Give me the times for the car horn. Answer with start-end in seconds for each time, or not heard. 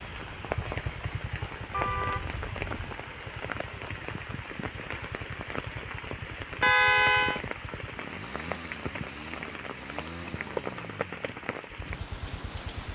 1.7-3.0, 6.6-7.4.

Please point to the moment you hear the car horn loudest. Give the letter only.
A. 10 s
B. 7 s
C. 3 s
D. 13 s
B.